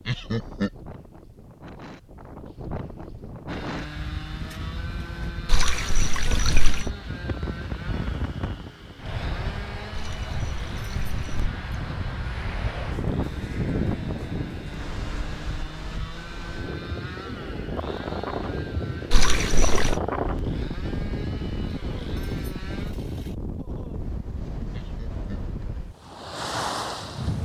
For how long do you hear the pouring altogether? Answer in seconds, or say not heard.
4 s.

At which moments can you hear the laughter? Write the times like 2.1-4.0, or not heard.
0.1-0.8, 24.7-25.5.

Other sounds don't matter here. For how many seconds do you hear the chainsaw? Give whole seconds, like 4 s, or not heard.
20 s.